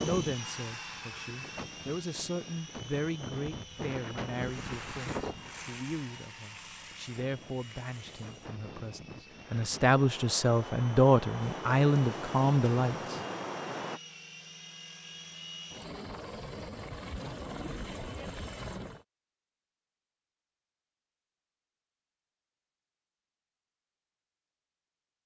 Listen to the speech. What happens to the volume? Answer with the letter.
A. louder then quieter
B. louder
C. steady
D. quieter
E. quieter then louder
B.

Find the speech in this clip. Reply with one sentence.
The speech can be heard from 0.0 to 13.2 s.